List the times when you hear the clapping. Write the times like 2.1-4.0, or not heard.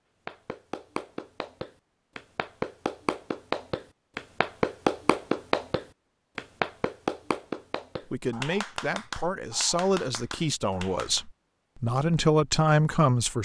0.2-11.2.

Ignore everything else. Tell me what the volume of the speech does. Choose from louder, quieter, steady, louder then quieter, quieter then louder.
louder.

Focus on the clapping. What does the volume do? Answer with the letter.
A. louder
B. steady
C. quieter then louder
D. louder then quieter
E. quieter
D.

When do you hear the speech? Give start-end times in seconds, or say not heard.
8.1-13.4.